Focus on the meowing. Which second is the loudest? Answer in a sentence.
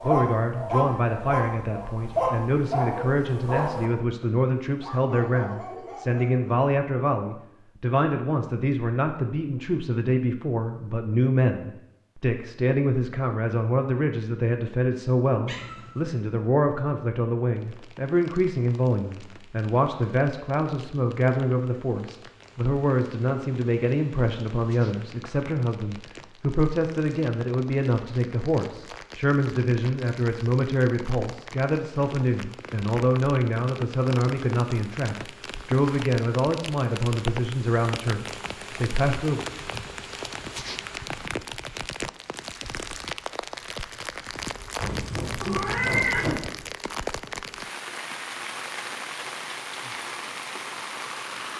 The volume of the meowing peaks at 46 seconds.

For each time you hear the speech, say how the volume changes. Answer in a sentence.
You can hear the speech from 0.0 to 39.5 s, at a steady volume.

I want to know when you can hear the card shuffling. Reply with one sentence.
The card shuffling can't be heard in this clip.